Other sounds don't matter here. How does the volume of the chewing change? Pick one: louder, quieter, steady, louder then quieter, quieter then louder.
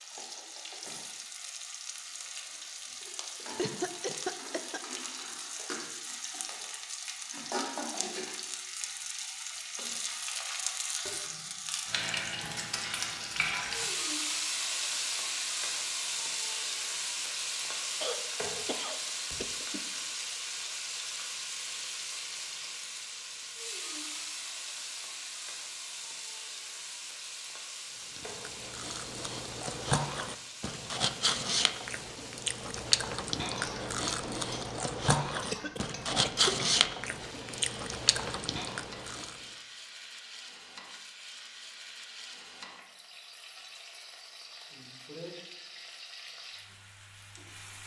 louder then quieter.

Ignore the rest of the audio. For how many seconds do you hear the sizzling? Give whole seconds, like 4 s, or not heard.
48 s.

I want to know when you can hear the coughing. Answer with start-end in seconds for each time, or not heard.
3.5-4.8, 18.0-19.9, 35.5-36.8.